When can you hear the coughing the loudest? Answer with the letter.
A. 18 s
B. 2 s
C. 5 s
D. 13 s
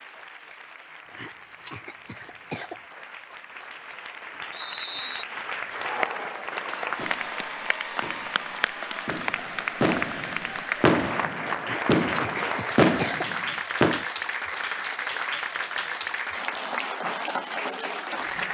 D.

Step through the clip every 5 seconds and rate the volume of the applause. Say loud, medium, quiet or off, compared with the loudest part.
quiet, loud, loud, loud.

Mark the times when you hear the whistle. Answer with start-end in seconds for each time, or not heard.
4.5-5.2.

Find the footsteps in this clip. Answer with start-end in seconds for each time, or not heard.
not heard.